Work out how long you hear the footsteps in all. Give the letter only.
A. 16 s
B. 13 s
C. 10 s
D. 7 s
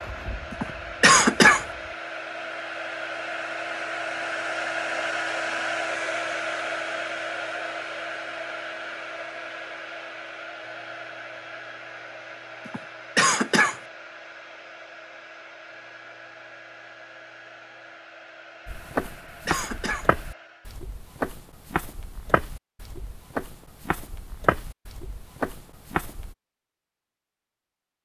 C.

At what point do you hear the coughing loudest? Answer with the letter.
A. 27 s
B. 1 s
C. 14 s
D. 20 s
B.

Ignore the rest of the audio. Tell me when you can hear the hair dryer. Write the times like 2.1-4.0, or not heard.
0.0-20.9.